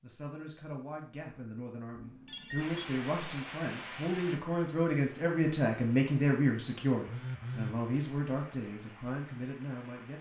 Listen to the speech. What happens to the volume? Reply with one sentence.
The loudness of the speech goes up, then down.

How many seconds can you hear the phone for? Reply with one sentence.
You can hear the phone for 2 seconds altogether.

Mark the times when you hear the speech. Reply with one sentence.
The speech can be heard from 0.0 to 10.1 s.